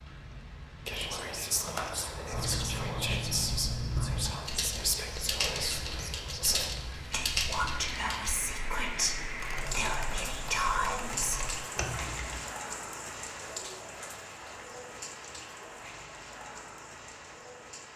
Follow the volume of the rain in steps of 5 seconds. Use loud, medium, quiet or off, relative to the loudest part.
medium, loud, loud, medium.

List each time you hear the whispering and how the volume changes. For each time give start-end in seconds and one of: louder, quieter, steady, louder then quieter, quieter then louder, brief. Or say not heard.
0.8-11.4 steady.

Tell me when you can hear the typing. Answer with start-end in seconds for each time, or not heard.
1.6-12.5.